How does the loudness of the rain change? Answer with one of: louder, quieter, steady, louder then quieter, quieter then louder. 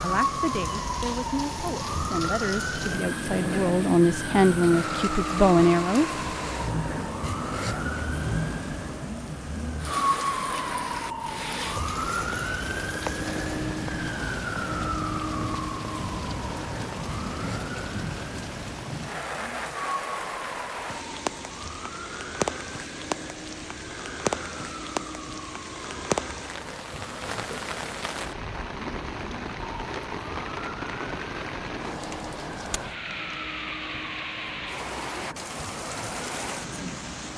steady.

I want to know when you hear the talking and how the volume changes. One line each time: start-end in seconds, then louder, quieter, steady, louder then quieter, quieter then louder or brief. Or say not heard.
0.0-6.0 louder.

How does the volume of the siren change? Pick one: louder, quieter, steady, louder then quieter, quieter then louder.
quieter.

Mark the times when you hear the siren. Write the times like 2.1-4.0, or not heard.
0.0-37.3.